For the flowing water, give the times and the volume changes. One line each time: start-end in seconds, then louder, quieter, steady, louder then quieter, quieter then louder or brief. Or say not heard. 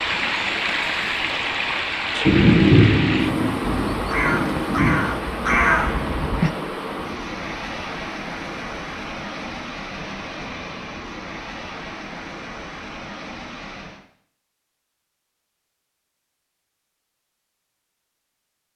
0.0-14.1 quieter.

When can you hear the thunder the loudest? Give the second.
3 s.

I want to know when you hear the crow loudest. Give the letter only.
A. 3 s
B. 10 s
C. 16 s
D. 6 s
D.